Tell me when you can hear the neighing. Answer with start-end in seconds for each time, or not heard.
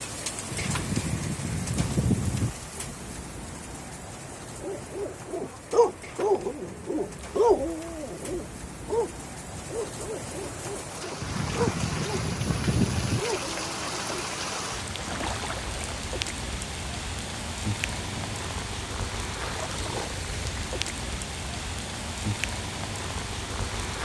0.5-2.5, 11.2-13.2, 17.9-18.4.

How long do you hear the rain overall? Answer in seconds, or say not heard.
24 s.